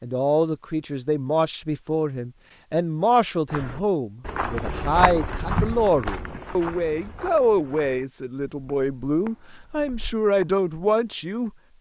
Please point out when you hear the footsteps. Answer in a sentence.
You can hear the footsteps from 3.5 to 10.7 s.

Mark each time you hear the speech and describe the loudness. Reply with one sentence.
The speech can be heard from 0.0 to 11.5 s, at a steady volume.